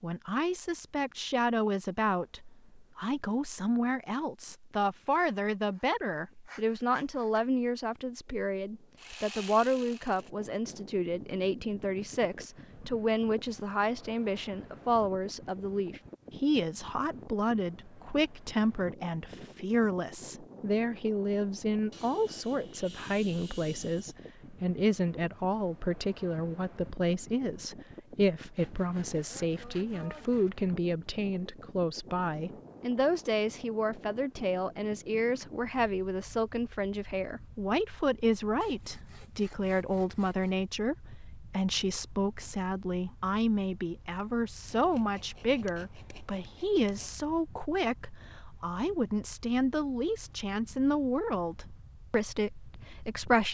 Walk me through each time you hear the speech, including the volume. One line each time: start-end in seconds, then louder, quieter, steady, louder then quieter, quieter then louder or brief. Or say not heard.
0.0-53.4 steady.